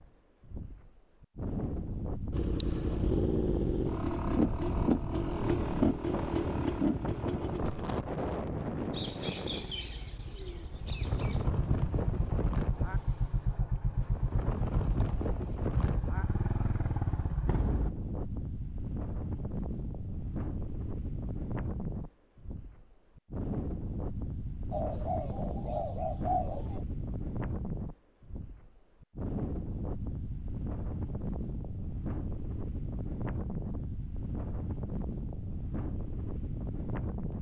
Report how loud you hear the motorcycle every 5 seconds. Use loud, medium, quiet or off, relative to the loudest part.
loud, loud, medium, medium, off, off, off, off.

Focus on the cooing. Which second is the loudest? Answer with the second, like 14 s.
26 s.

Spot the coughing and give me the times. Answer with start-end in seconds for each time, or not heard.
not heard.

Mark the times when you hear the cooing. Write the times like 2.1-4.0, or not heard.
8.9-11.4, 24.7-26.9.